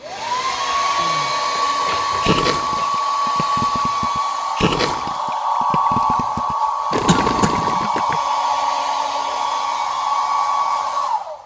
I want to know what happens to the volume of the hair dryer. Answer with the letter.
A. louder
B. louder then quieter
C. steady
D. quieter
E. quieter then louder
C.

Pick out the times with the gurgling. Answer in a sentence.
The gurgling can be heard from 2.2 to 8.2 s.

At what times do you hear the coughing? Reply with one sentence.
You can hear the coughing from 0.9 to 3.0 s and from 7.0 to 7.6 s.